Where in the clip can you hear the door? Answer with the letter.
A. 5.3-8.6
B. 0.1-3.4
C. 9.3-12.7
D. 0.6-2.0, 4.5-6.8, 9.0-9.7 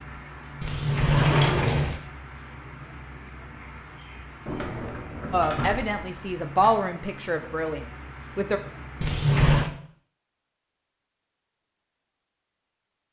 D.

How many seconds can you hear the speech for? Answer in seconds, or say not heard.
3 s.